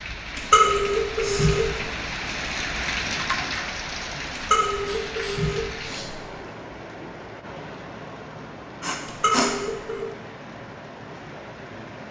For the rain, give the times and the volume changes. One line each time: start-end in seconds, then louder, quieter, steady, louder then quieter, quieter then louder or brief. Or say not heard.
0.0-12.0 quieter.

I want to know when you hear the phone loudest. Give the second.
1 s.